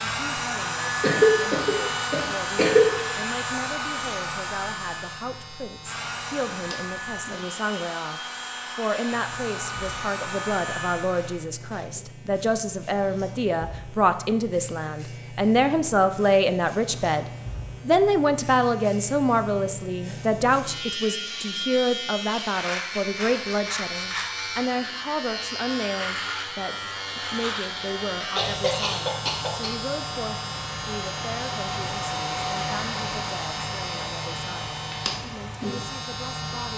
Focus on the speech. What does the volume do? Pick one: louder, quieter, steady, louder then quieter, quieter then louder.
louder then quieter.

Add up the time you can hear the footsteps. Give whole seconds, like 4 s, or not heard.
not heard.